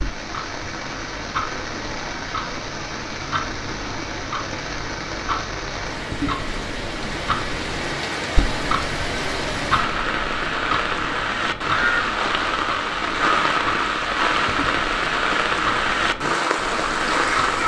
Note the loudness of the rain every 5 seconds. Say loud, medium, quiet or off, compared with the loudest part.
medium, medium, loud, loud.